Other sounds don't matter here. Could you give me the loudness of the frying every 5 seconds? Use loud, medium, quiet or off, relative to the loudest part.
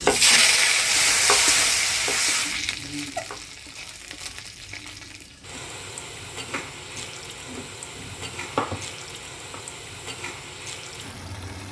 loud, quiet, quiet.